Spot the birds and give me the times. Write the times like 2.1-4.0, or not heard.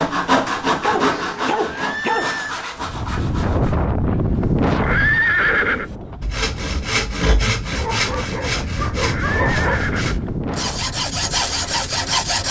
not heard.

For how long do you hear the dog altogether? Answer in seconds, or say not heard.
4 s.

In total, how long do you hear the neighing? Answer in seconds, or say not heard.
3 s.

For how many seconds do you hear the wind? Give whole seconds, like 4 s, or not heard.
10 s.